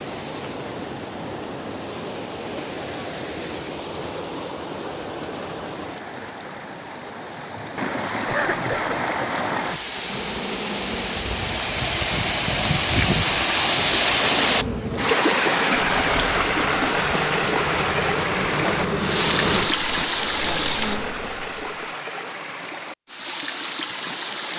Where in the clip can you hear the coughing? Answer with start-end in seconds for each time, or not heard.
8.2-8.9.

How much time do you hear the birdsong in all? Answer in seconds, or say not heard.
not heard.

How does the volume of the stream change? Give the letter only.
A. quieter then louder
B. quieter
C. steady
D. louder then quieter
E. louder
D.